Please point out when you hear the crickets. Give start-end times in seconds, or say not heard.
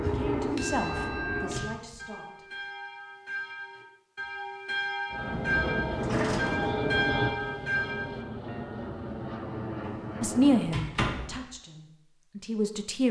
not heard.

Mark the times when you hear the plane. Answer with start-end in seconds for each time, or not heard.
0.0-1.6, 5.1-10.8.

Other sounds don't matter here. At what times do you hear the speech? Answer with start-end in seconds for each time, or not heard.
0.0-2.5, 10.2-13.0.